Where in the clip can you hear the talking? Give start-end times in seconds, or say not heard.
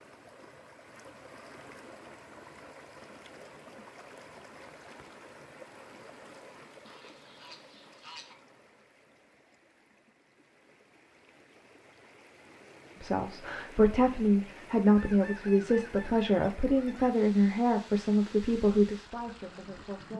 13.0-20.1.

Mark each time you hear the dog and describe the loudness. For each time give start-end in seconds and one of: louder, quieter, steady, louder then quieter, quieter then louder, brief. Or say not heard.
not heard.